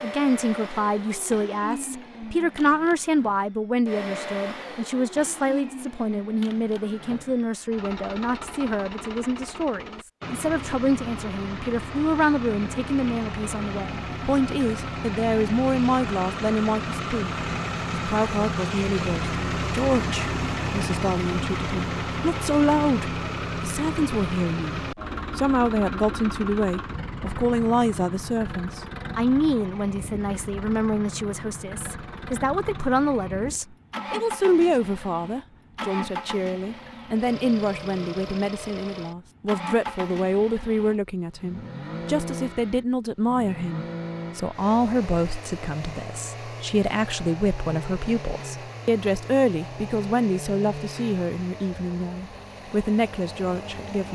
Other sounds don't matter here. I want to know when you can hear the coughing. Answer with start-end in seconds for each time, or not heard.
not heard.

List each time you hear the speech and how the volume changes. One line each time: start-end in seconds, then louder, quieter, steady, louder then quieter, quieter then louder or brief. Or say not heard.
0.0-54.1 steady.